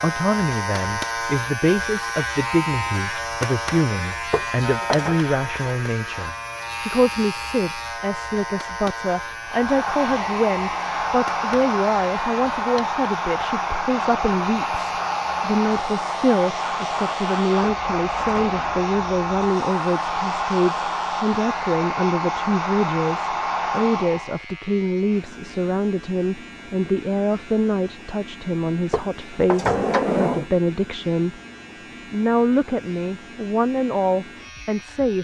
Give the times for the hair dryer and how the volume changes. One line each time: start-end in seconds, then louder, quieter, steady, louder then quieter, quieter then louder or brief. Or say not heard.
9.4-24.4 steady.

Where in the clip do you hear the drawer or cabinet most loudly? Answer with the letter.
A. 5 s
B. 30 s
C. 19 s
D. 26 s
B.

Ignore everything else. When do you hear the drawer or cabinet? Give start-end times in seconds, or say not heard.
4.3-5.2, 17.6-18.6, 28.9-30.4.